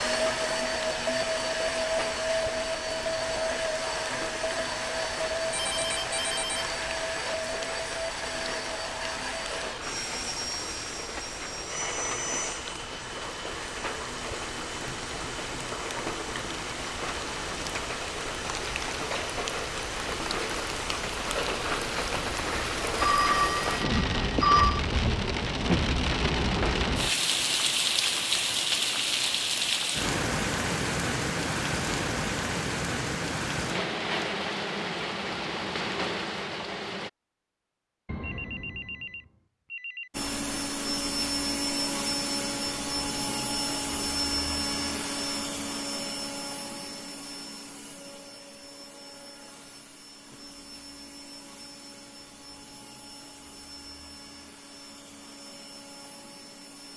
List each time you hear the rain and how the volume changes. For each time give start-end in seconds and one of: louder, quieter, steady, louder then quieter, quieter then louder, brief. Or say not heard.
0.0-37.1 louder.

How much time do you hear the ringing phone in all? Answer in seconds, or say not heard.
6 s.